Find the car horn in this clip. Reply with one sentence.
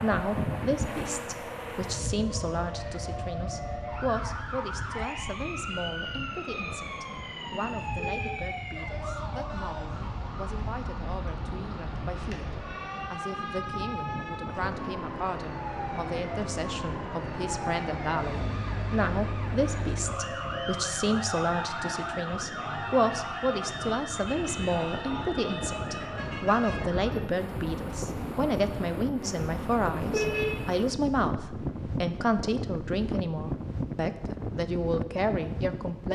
The car horn can be heard from 8.0 to 8.5 s and from 30.1 to 30.7 s.